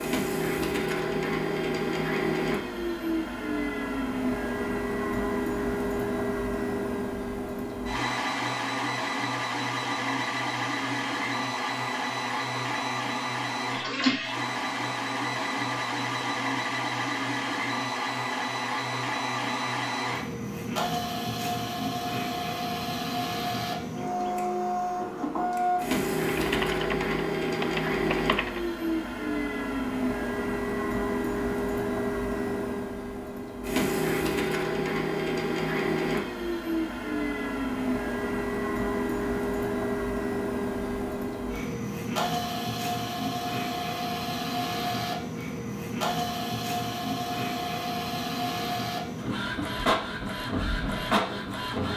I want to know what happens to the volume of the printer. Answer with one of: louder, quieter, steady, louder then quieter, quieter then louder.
steady.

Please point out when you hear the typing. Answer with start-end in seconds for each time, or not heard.
26.2-28.6.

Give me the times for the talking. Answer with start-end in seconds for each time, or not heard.
not heard.